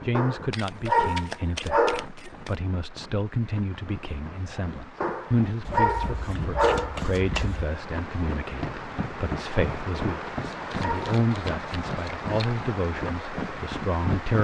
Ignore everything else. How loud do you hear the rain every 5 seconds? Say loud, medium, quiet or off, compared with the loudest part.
quiet, loud, loud.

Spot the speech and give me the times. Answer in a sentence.
You can hear the speech from 0.1 to 14.3 s.